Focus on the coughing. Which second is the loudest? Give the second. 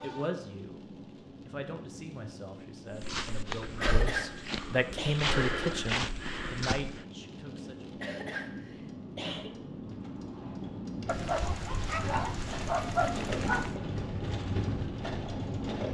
4 s.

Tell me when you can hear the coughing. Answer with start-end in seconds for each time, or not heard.
3.8-5.2, 8.0-9.6.